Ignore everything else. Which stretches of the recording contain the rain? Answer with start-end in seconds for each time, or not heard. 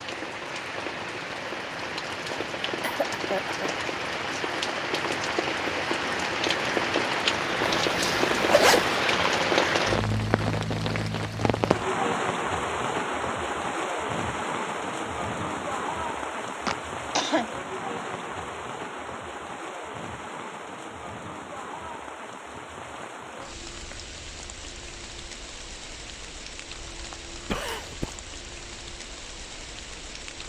0.0-30.4.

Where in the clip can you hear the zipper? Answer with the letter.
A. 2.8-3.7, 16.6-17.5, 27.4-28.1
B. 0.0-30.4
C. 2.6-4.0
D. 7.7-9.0
D.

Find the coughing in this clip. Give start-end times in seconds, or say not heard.
2.8-3.7, 16.6-17.5, 27.4-28.1.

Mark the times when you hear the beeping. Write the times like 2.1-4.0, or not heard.
not heard.